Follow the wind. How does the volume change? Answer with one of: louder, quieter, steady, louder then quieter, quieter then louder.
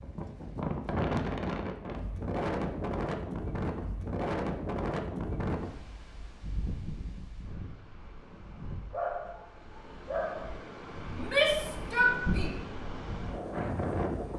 quieter then louder.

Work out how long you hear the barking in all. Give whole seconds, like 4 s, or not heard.
2 s.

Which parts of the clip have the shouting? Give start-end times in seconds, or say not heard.
11.1-12.5.